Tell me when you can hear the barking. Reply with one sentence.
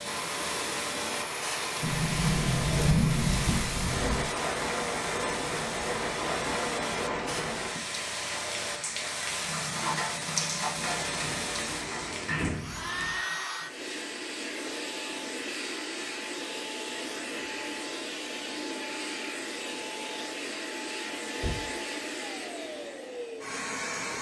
The barking can't be heard in this clip.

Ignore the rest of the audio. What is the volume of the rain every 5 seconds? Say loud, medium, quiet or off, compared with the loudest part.
loud, loud, loud, off, off.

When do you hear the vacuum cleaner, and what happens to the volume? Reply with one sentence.
The vacuum cleaner can be heard from 0.0 to 24.1 s, at a steady volume.